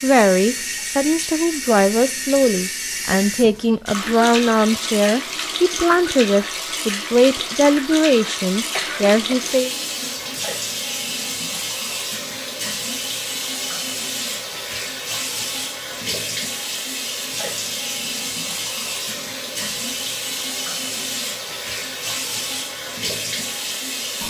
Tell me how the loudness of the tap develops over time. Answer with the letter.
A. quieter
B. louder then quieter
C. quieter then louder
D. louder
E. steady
E.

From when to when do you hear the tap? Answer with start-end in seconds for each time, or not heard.
0.0-24.2.